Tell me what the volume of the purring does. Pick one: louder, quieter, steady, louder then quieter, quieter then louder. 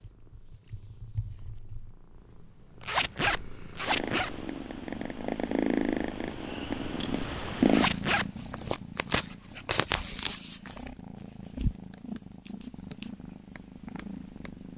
louder then quieter.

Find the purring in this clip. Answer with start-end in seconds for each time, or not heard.
0.0-14.7.